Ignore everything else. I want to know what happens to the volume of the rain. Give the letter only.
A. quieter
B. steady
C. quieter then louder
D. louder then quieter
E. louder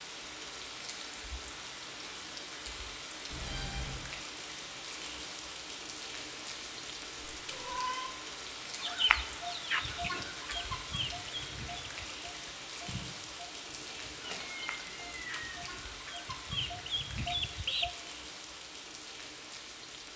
B.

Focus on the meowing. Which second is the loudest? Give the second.
8 s.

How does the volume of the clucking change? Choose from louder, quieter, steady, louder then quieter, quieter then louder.
quieter then louder.